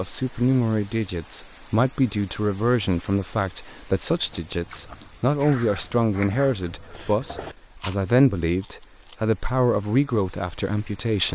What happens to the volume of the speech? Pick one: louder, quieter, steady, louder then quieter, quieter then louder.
steady.